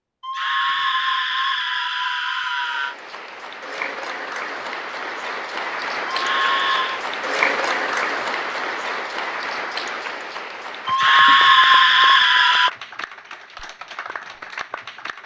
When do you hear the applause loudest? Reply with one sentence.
The loudest moment of the applause is at 8 seconds.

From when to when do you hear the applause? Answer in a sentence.
The applause can be heard from 2.5 to 15.2 s.